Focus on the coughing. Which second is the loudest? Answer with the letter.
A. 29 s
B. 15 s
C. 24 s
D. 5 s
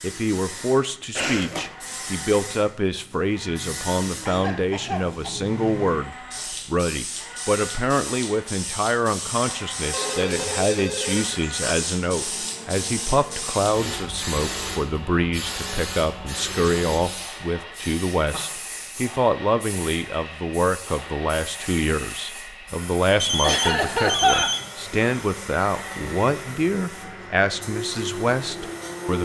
C.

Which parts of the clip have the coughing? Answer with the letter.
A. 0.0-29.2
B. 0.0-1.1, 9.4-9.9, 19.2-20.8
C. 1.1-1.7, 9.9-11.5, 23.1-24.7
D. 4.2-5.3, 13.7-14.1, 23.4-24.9
D.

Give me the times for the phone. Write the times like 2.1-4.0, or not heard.
1.1-1.7, 9.9-11.5, 23.1-24.7.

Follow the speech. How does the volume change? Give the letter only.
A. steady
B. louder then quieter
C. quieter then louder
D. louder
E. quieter
A.